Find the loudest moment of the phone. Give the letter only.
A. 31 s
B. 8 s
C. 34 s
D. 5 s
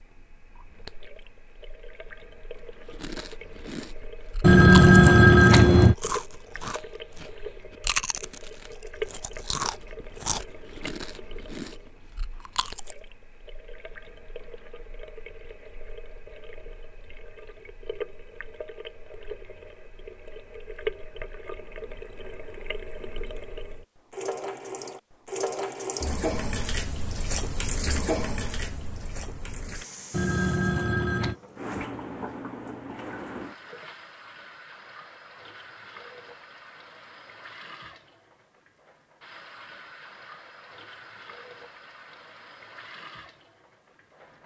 D.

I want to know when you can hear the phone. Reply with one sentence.
The phone can be heard from 4.4 to 6.0 s and from 30.1 to 31.4 s.